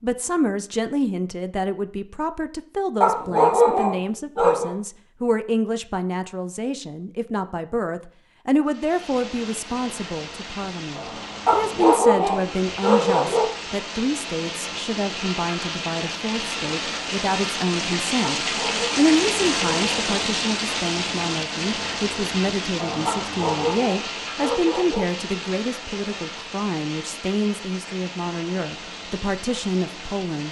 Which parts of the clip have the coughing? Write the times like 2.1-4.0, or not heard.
not heard.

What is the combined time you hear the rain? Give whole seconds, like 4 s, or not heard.
22 s.